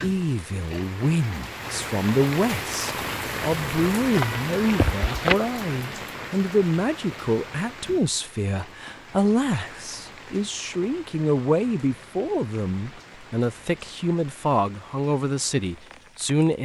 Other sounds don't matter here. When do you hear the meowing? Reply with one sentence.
You can hear the meowing from 4.1 to 5.3 s.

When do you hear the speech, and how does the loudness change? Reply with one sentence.
The speech can be heard from 0.0 to 16.6 s, at a steady volume.